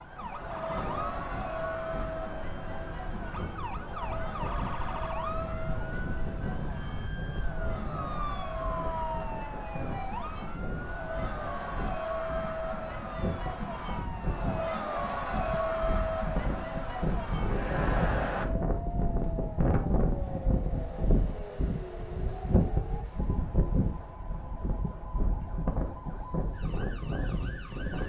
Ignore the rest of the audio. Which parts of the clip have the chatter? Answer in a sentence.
You can hear the chatter from 0.0 to 18.4 s.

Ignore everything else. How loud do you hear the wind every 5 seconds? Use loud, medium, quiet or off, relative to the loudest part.
medium, medium, medium, loud, loud, loud.